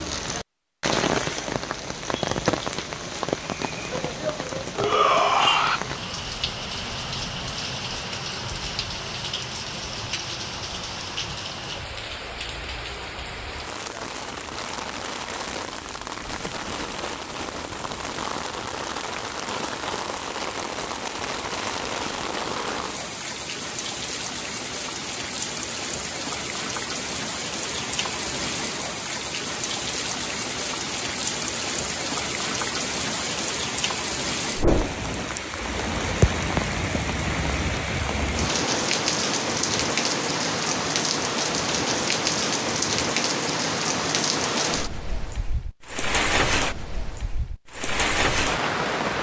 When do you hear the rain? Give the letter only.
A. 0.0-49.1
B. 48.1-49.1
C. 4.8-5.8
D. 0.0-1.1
A.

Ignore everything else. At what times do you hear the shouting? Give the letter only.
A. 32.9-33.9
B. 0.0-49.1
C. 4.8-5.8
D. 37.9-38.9
C.